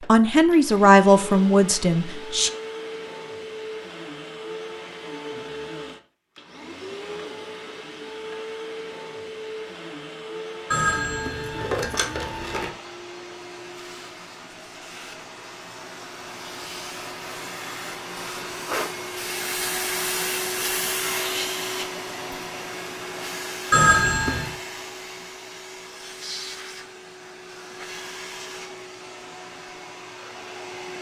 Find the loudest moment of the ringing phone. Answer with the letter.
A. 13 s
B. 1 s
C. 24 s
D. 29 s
C.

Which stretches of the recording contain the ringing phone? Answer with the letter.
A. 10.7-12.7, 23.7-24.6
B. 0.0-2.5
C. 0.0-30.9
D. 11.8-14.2
A.